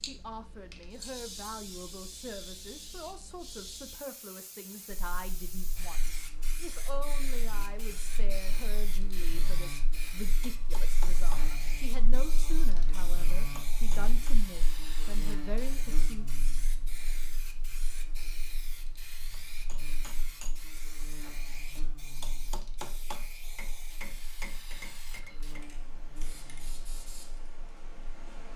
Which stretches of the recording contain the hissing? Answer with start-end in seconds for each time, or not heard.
0.0-28.5.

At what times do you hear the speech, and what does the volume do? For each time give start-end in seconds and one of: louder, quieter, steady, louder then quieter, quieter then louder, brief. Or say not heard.
0.0-16.4 steady.